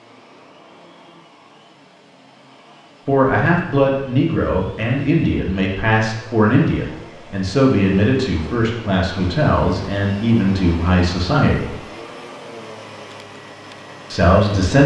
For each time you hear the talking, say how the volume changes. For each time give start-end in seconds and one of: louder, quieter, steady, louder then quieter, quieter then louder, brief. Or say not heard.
3.0-11.8 steady
14.1-14.8 brief.